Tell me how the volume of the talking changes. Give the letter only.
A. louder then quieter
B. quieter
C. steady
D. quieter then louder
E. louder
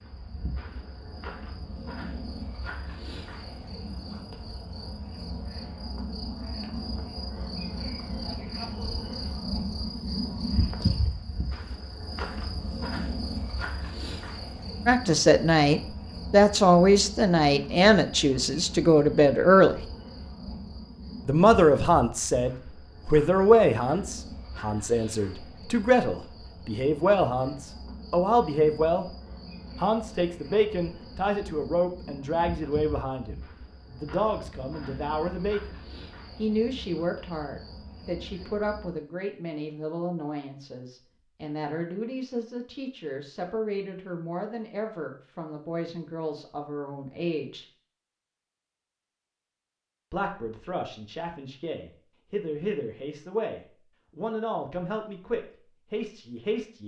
B.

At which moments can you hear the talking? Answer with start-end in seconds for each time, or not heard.
14.8-19.8, 21.2-29.1, 29.8-47.6, 50.1-56.8.